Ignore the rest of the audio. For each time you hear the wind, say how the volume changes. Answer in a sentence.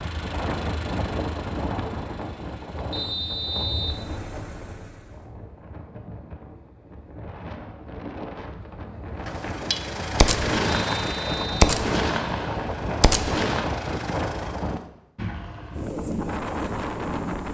You can hear the wind from 0.0 to 17.4 s, getting quieter then louder.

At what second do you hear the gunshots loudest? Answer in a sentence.
The volume of the gunshots peaks at 12 seconds.